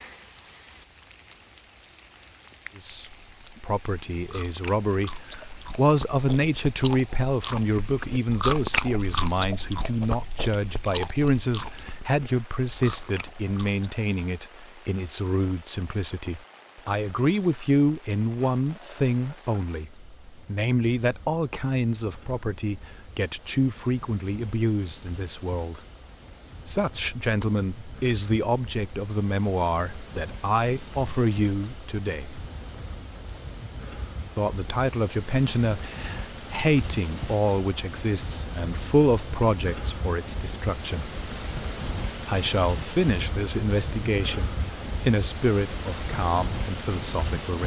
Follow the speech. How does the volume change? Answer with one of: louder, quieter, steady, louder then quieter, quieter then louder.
steady.